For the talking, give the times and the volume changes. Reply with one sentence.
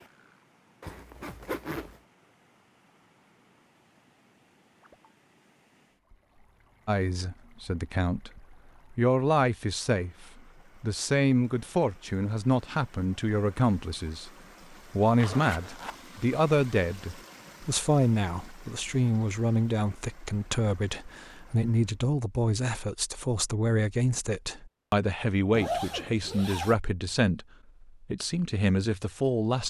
The talking can be heard from 6.8 to 29.6 s, at a steady volume.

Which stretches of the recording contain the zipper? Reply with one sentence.
The zipper can be heard from 0.8 to 2.0 s, from 15.2 to 15.9 s and from 25.5 to 26.8 s.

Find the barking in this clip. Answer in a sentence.
You can't hear the barking here.